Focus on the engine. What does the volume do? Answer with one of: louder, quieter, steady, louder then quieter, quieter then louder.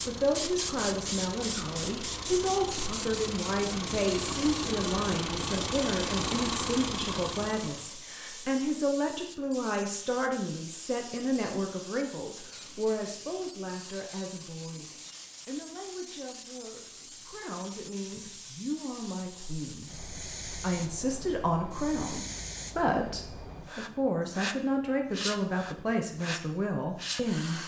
louder.